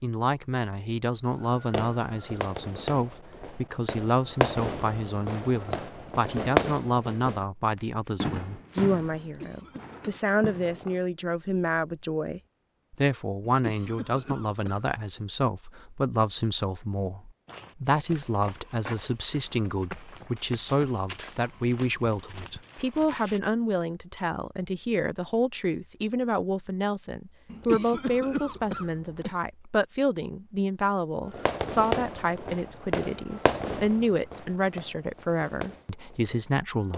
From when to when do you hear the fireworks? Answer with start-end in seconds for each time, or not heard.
1.4-7.5, 8.2-11.0, 31.3-36.9.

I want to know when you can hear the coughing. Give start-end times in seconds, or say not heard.
9.2-10.2, 13.4-14.9, 27.5-29.4.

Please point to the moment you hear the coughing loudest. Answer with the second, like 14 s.
28 s.